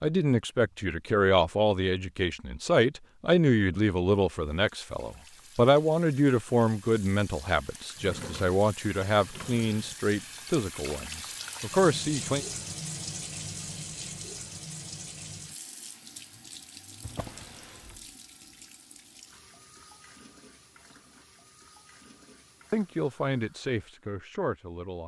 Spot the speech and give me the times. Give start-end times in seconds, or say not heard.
0.0-12.4, 22.7-25.0.